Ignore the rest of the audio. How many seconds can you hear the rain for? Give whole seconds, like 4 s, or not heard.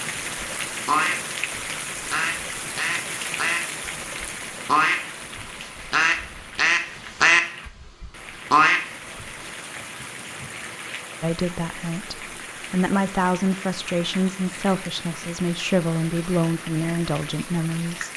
18 s.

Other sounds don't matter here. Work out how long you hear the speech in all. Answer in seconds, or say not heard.
7 s.